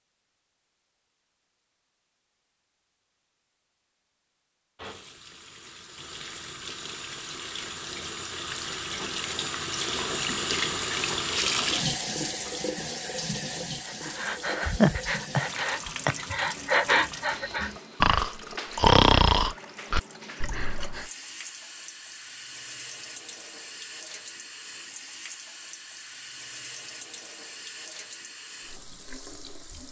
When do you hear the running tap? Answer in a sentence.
The running tap can be heard from 4.8 to 29.8 s.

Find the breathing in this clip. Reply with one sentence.
The breathing can be heard from 13.8 to 21.1 s.